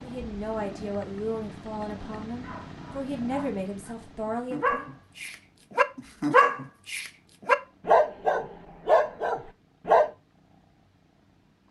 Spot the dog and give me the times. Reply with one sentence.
The dog can be heard from 2.2 to 10.1 s.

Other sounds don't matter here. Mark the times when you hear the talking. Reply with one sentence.
The talking can be heard from 0.0 to 4.9 s.